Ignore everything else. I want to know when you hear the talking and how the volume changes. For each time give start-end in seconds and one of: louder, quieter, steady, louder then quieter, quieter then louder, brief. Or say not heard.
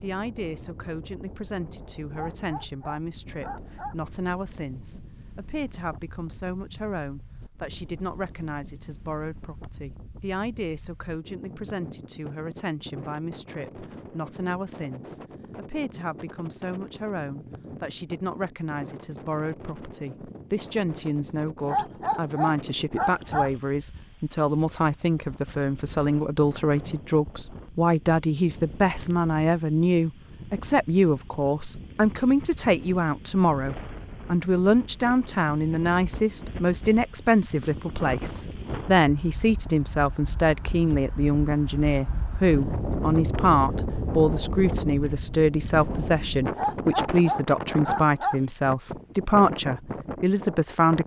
0.0-51.0 louder.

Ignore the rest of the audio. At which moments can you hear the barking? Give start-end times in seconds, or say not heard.
2.1-4.0, 21.6-23.5, 46.5-48.4.